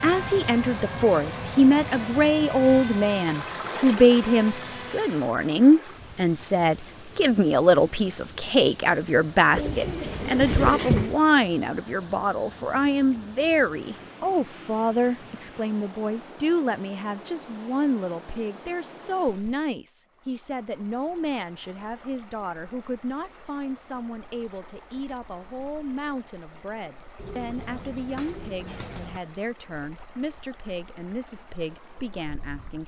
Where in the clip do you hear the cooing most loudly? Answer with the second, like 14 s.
11 s.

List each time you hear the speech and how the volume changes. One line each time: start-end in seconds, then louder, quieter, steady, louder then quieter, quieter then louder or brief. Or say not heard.
0.0-32.8 quieter.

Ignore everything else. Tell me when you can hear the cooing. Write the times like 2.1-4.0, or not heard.
9.5-11.2, 27.1-29.2.